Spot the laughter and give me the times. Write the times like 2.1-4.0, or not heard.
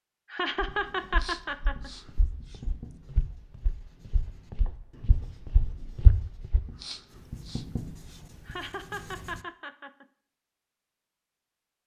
0.3-1.9, 8.4-10.1.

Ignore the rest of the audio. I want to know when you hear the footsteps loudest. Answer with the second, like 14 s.
6 s.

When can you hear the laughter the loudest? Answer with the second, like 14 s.
1 s.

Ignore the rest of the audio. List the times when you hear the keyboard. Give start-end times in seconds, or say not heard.
not heard.